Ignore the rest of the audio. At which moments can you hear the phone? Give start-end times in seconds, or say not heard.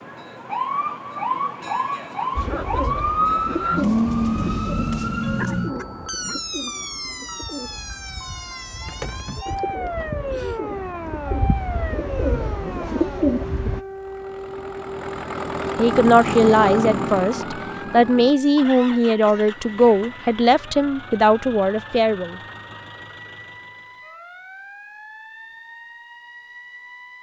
not heard.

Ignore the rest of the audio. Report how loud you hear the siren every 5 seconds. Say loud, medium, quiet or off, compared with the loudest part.
loud, medium, medium, quiet, quiet, quiet.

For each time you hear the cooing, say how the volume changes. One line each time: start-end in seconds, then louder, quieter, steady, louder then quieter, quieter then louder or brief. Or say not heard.
2.4-13.8 quieter then louder.